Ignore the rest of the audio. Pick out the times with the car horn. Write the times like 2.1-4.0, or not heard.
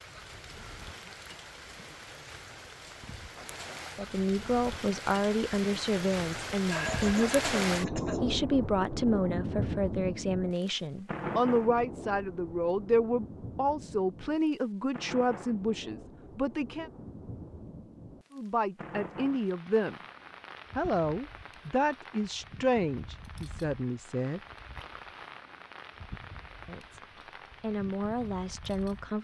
not heard.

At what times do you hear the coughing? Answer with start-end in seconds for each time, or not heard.
6.7-8.2.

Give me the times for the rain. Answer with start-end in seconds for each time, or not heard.
0.0-29.1.